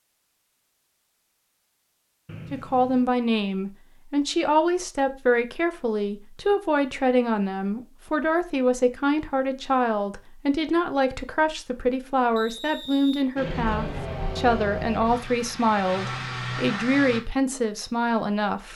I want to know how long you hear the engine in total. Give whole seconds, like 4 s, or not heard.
4 s.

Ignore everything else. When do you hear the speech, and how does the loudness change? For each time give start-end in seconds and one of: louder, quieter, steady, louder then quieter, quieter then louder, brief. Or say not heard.
2.5-18.7 steady.